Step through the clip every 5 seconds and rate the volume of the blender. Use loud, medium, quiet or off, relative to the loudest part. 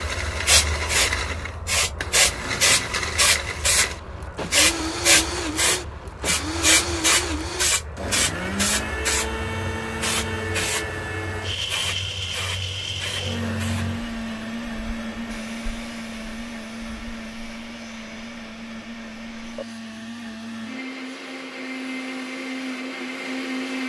loud, loud, loud, medium, loud.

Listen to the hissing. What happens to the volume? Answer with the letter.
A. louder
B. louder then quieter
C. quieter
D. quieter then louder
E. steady
C.